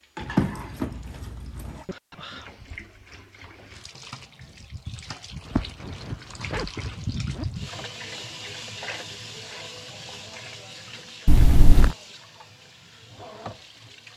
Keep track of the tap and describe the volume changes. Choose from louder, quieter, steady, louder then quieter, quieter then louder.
louder then quieter.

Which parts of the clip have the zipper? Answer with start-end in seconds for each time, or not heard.
0.2-1.8, 5.5-7.5, 11.2-11.9.